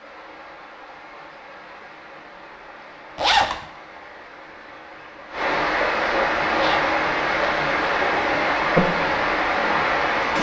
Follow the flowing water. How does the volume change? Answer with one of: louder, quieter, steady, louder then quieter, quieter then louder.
louder.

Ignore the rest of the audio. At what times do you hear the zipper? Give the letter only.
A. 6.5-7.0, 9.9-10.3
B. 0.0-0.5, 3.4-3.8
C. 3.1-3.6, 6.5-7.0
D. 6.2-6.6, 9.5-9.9
C.